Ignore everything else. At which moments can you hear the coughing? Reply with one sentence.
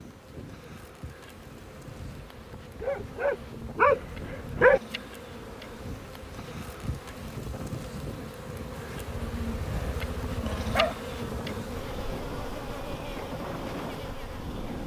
The coughing can't be heard in this clip.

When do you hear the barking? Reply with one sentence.
You can hear the barking from 2.8 to 4.8 s and from 9.1 to 10.9 s.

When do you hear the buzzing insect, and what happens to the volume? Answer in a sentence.
You can hear the buzzing insect from 0.0 to 14.8 s, getting louder.